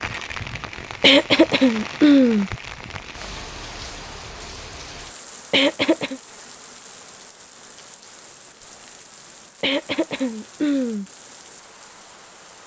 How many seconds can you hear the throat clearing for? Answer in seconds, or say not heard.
4 s.